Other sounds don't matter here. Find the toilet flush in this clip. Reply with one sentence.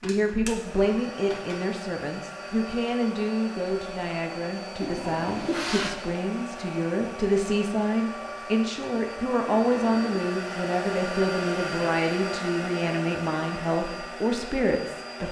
You can hear the toilet flush from 4.8 to 6.0 s and from 9.4 to 10.2 s.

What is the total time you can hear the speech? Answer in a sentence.
The speech can be heard for 15 seconds in total.